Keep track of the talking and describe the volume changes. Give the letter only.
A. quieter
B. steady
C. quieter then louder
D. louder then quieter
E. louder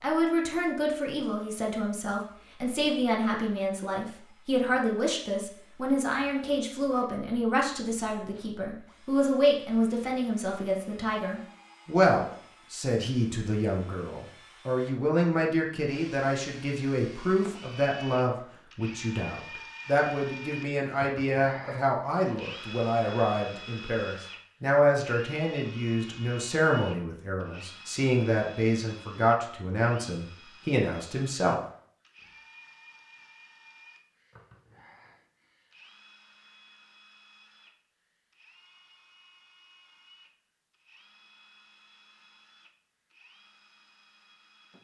B.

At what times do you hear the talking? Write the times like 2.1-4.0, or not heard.
0.0-31.6.